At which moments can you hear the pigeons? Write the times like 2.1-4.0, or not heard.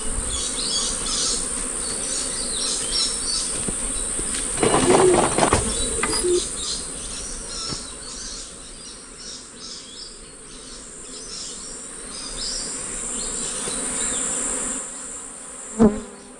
4.5-6.4.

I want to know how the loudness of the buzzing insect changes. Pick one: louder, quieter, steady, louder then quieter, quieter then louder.
quieter then louder.